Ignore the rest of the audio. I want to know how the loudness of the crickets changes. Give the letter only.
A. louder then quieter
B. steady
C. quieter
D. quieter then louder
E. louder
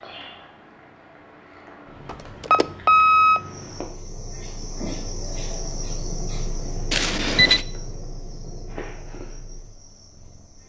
C.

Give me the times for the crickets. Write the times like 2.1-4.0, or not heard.
3.3-10.6.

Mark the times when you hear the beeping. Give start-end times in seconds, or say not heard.
2.0-3.4, 6.9-7.7.